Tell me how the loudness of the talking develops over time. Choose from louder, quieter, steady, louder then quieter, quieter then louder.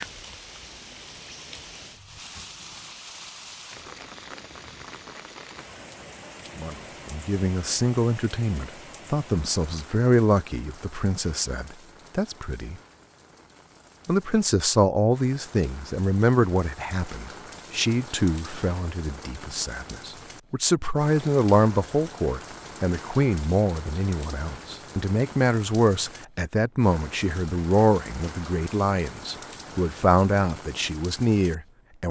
steady.